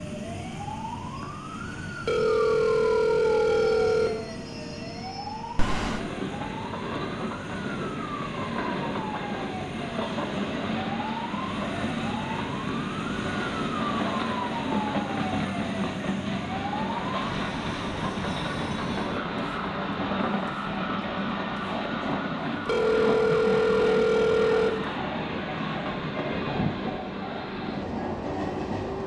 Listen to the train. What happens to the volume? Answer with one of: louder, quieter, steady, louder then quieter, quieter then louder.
louder.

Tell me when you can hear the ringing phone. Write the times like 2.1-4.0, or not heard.
2.0-4.2, 22.6-24.8.